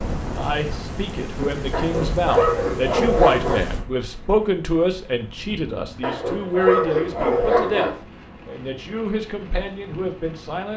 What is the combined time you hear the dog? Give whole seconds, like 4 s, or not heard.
4 s.